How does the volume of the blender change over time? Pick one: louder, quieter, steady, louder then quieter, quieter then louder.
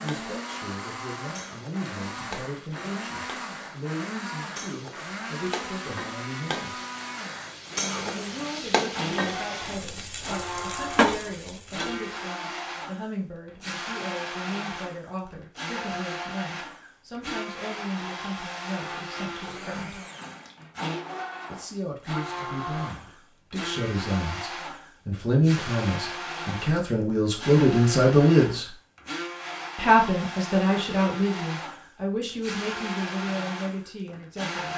steady.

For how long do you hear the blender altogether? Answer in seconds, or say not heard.
35 s.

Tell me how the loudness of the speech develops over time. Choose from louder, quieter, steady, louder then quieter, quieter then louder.
louder.